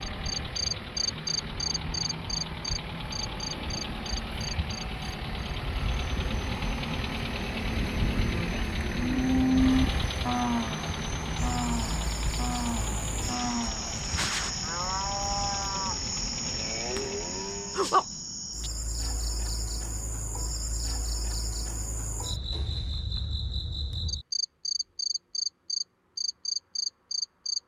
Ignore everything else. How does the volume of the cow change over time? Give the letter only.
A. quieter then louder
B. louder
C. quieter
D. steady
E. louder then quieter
C.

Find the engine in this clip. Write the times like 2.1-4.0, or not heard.
0.0-17.6.